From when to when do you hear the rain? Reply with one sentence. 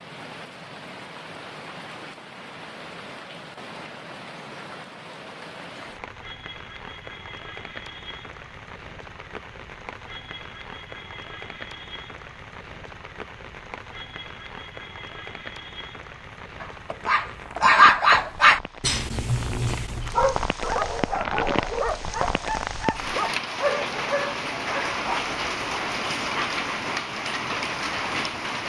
The rain can be heard from 0.0 to 28.6 s.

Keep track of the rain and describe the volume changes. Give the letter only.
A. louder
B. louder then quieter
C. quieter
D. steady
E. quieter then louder
A.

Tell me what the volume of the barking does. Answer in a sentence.
The loudness of the barking goes down.